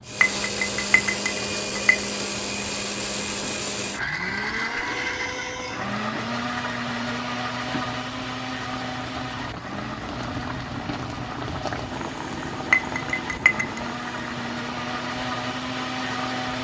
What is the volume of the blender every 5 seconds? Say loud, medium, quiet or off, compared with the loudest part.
loud, loud, medium, loud.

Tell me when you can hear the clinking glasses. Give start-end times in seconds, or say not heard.
0.2-2.0, 12.7-13.8.